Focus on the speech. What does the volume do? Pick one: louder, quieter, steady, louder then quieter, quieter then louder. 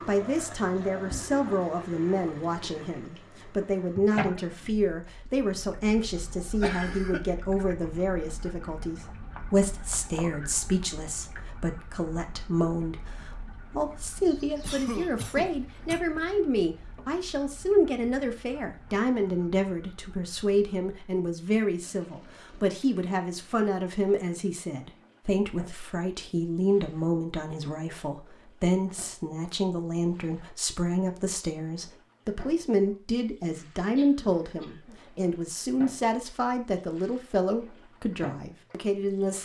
steady.